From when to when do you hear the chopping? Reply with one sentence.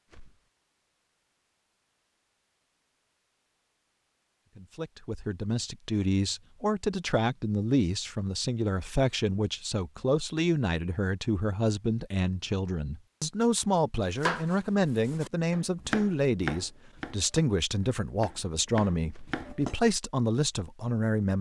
The chopping can be heard from 14.2 to 19.8 s.